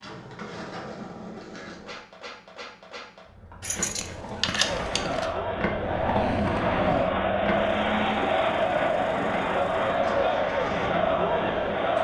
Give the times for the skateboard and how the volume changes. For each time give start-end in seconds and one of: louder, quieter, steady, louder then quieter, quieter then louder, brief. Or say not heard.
0.0-11.9 louder then quieter.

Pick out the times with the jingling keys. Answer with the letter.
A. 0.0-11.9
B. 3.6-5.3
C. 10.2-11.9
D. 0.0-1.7
B.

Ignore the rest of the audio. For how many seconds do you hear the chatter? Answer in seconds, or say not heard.
7 s.